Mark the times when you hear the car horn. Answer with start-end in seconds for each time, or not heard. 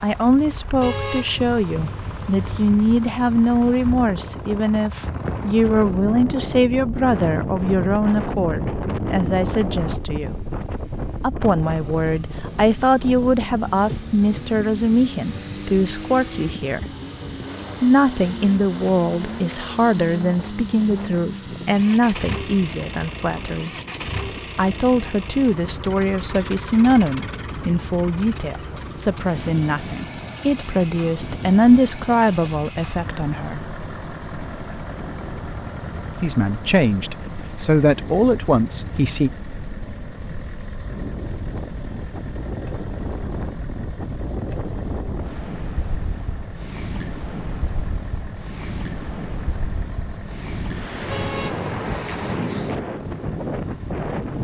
0.8-2.8, 51.1-51.7.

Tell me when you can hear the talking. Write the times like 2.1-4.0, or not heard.
0.0-10.3, 11.2-16.9, 17.8-23.7, 24.6-33.6, 36.2-39.3.